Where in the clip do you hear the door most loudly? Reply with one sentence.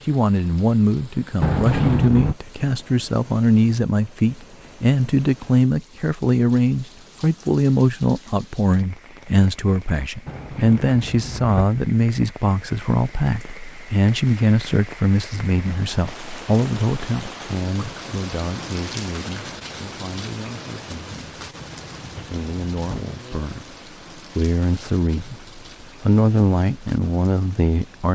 The loudest moment of the door is at 2 seconds.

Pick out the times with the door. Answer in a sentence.
You can hear the door from 1.4 to 2.4 s, from 10.2 to 11.7 s and from 21.6 to 23.1 s.